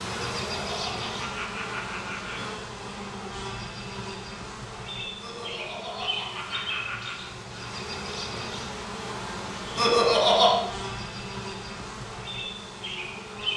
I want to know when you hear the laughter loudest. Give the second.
10 s.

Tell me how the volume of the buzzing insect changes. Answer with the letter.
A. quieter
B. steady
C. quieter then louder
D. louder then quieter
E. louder
B.